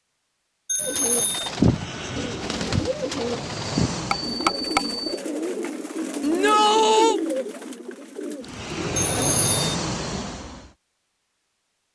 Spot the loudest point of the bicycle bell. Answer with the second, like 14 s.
5 s.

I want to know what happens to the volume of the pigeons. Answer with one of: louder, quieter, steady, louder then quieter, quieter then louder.
quieter.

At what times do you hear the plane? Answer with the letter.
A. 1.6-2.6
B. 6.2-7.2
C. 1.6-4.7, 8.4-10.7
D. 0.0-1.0
C.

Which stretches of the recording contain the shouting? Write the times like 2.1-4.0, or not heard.
6.2-7.2.